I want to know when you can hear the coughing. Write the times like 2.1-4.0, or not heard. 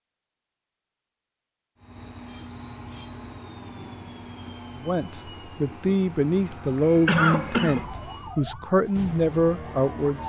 7.0-7.8.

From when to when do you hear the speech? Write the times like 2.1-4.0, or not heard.
4.8-10.2.